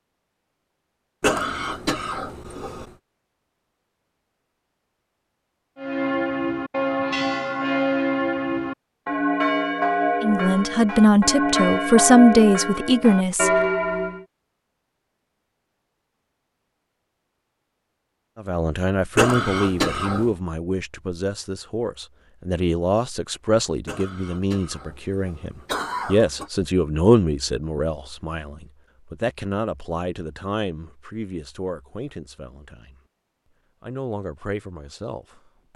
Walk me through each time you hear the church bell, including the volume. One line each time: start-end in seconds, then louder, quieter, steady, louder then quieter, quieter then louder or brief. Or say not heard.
5.8-14.2 steady.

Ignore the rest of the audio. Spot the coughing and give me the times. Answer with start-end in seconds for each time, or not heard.
1.2-3.0, 19.1-20.4, 23.9-26.5.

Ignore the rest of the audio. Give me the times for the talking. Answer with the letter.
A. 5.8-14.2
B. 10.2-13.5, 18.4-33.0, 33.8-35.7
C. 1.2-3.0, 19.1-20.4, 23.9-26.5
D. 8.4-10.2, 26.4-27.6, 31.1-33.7
B.